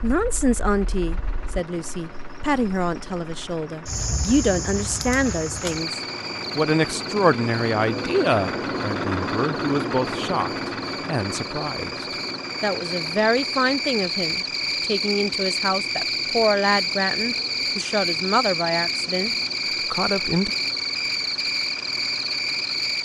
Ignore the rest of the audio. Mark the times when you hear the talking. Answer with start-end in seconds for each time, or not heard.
0.0-20.5.